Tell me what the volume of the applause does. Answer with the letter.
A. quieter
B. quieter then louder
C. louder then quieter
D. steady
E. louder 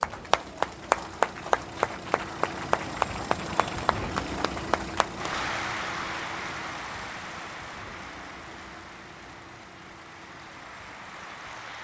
A.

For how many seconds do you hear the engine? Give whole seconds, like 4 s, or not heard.
12 s.